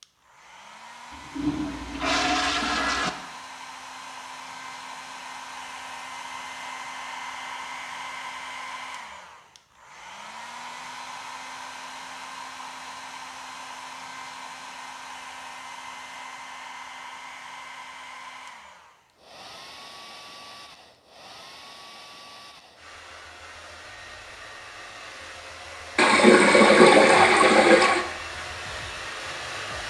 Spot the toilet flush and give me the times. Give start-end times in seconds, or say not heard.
1.2-3.1, 25.9-28.1.